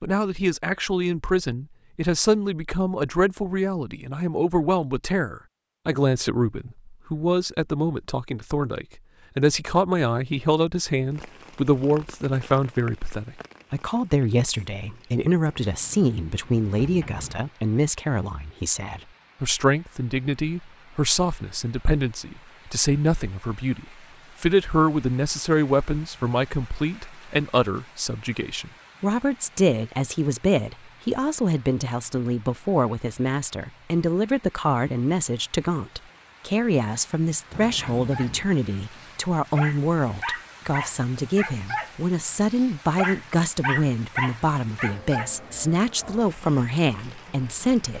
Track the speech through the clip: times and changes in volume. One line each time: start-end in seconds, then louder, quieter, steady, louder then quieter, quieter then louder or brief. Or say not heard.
0.0-47.9 steady.